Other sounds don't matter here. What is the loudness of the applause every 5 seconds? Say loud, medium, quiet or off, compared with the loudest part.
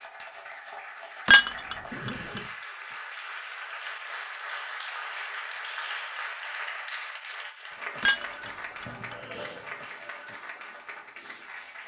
loud, loud, medium.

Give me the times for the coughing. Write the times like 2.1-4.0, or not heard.
1.9-2.5, 8.8-9.8.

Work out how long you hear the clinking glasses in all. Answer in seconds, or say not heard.
2 s.